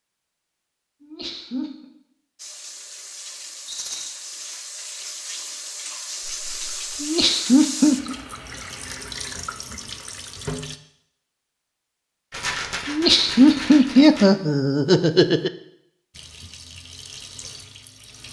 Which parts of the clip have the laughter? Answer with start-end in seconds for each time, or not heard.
1.0-1.9, 7.0-8.2, 12.8-15.5.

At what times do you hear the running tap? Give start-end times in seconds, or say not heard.
2.4-10.8, 16.1-18.2.